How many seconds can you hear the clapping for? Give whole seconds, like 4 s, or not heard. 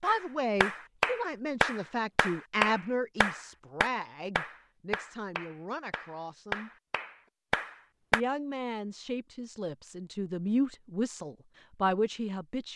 8 s.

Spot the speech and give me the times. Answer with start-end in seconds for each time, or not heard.
0.0-6.7, 8.1-12.7.